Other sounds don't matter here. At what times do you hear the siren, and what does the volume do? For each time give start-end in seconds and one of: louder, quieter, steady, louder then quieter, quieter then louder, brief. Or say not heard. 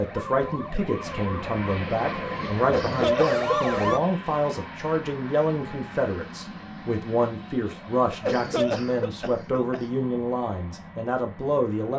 0.0-4.0 louder.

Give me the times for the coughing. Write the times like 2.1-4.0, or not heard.
2.6-3.8, 8.0-9.8.